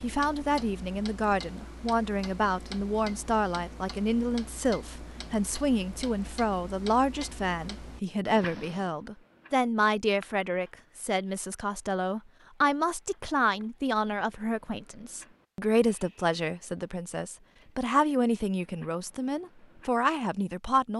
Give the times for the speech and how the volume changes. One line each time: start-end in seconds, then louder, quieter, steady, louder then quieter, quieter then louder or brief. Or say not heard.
0.0-20.9 steady.